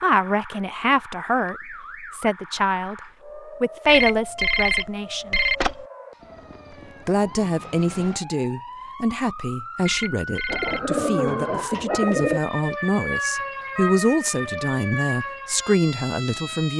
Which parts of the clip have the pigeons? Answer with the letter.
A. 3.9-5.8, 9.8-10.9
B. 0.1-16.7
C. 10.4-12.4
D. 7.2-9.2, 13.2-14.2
C.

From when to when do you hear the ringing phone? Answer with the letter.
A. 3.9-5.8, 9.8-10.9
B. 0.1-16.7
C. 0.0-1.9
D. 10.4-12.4
A.